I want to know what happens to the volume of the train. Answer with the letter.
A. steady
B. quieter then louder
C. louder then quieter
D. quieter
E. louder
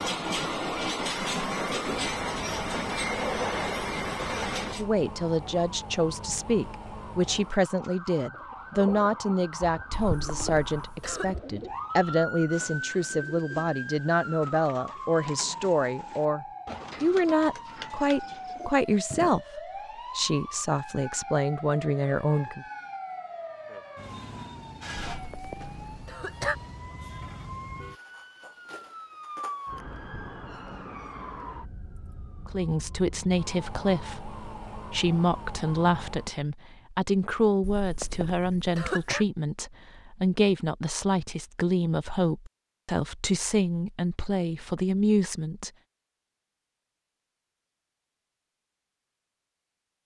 A.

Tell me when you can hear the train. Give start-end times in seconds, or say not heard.
0.0-4.8.